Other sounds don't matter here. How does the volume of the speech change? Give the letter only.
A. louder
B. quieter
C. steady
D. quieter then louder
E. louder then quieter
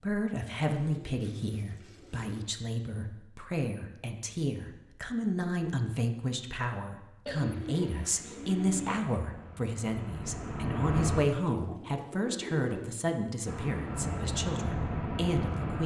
C.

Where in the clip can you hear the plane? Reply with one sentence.
You can hear the plane from 8.4 to 11.2 s and from 13.4 to 15.8 s.